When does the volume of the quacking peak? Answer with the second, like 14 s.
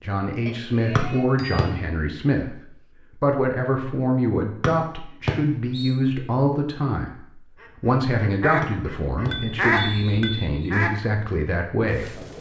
10 s.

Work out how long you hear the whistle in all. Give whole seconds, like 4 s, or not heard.
4 s.